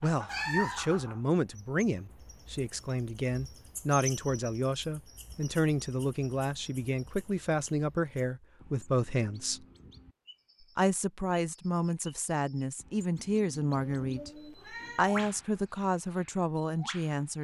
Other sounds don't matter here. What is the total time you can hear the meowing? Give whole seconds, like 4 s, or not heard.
2 s.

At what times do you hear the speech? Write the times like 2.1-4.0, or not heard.
0.0-9.6, 10.8-14.3, 14.9-17.3.